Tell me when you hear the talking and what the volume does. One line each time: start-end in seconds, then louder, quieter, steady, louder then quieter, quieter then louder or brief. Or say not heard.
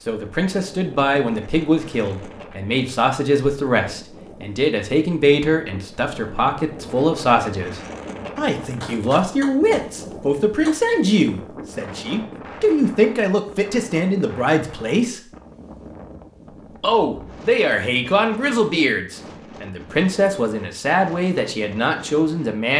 0.1-15.2 steady
16.8-22.7 steady.